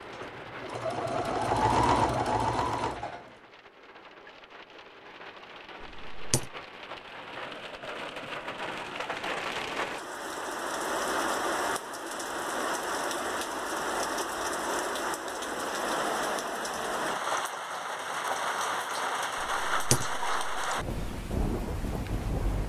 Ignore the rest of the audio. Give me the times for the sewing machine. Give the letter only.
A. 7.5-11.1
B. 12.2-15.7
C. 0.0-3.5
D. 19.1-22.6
C.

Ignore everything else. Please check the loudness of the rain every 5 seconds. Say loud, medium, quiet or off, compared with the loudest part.
quiet, medium, loud, loud, loud.